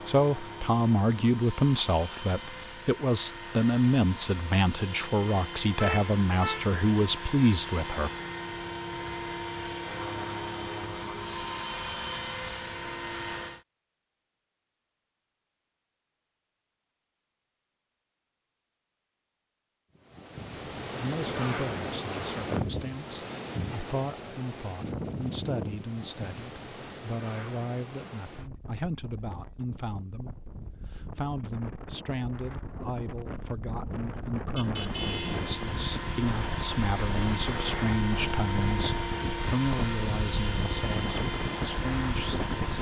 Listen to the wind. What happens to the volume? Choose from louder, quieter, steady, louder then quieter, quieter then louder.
quieter then louder.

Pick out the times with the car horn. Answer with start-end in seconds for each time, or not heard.
5.8-6.8, 34.5-35.4.